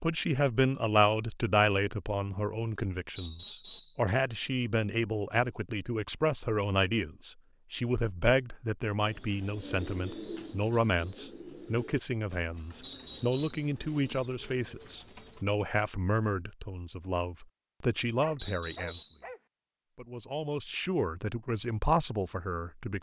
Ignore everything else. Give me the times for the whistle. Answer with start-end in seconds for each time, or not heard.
3.1-4.0, 12.8-13.7, 18.4-19.2.